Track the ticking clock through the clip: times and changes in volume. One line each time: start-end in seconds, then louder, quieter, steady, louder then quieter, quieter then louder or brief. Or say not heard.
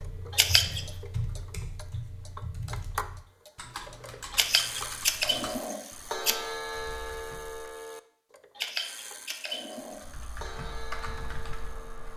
0.0-12.1 louder then quieter.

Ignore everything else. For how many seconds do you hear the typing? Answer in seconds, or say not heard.
10 s.